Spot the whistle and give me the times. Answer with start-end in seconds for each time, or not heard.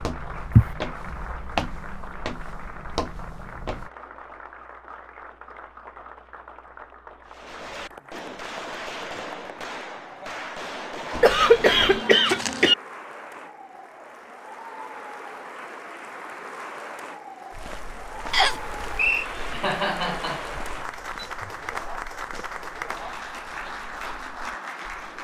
18.3-19.2.